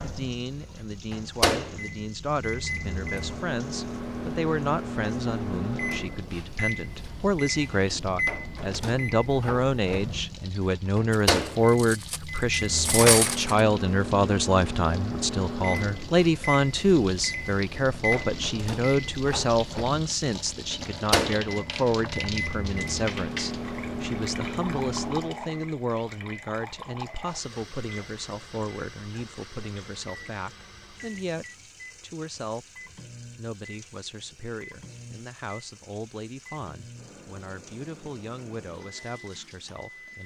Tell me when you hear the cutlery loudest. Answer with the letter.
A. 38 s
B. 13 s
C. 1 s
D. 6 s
B.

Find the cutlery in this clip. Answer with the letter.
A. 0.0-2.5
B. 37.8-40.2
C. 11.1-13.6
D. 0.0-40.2
C.